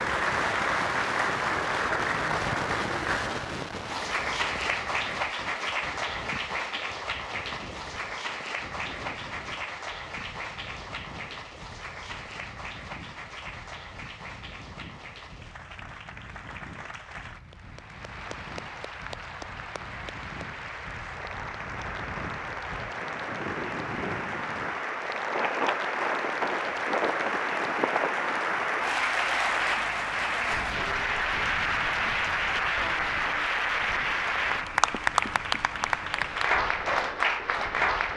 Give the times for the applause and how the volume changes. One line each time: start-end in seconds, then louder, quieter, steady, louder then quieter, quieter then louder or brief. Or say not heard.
0.0-38.1 quieter then louder.